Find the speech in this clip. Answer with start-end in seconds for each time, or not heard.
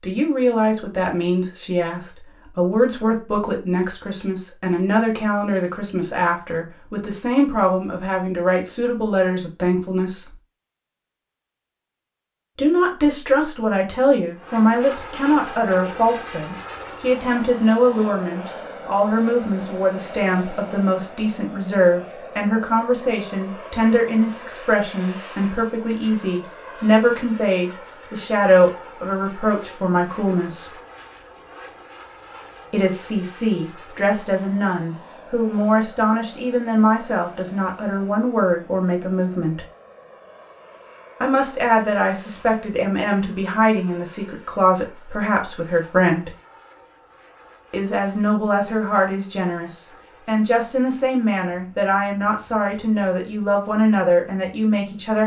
0.0-10.3, 12.6-30.7, 32.7-39.6, 41.2-46.3, 47.7-55.2.